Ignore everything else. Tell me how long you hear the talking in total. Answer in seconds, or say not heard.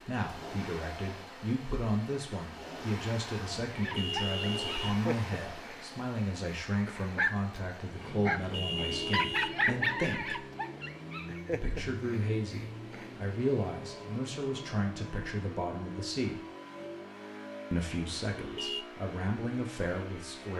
18 s.